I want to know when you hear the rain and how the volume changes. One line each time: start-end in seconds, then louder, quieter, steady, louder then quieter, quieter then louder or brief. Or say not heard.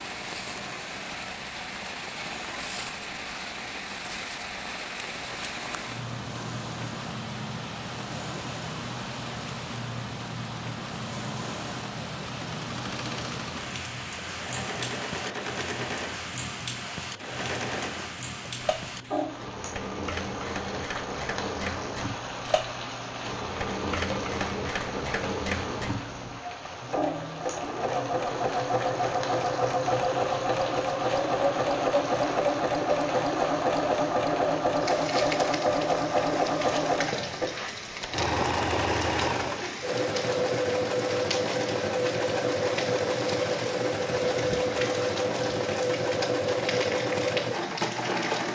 0.0-48.5 steady.